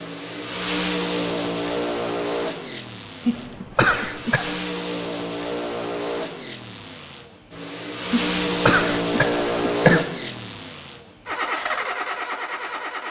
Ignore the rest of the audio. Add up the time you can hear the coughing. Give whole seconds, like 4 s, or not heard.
3 s.